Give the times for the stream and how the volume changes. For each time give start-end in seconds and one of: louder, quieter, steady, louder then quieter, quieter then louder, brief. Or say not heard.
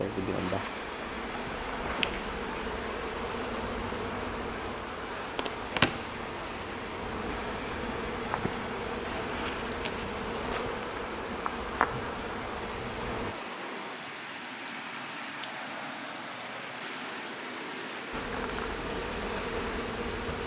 0.0-20.4 steady.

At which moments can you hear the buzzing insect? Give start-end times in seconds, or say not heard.
0.0-13.3, 18.1-20.4.